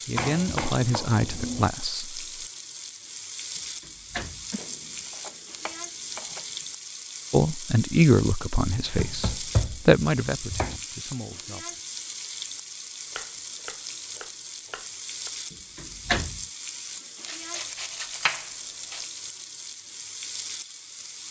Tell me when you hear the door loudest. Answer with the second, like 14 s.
16 s.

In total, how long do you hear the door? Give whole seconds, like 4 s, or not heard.
2 s.